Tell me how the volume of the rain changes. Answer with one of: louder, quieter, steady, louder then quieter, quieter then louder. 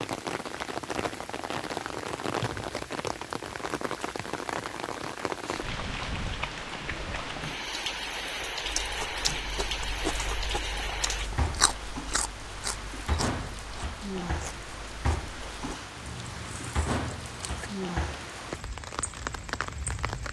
steady.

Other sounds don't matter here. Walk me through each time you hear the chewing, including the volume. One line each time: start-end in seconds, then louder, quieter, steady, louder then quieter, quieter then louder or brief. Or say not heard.
8.6-17.8 quieter then louder.